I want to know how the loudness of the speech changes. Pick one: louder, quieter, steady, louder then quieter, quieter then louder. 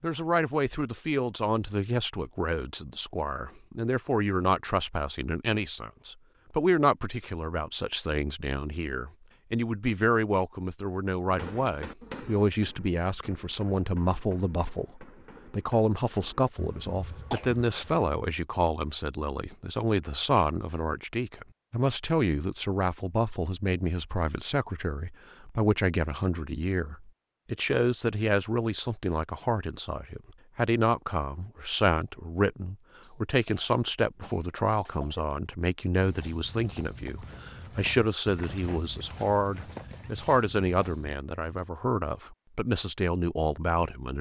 steady.